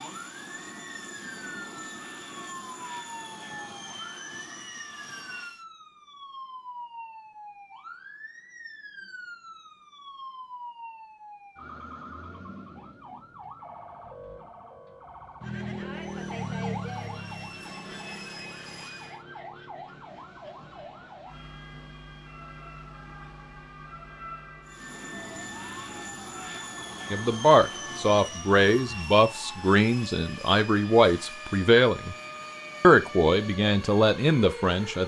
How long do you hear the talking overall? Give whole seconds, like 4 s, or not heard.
7 s.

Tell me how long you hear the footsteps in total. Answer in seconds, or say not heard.
not heard.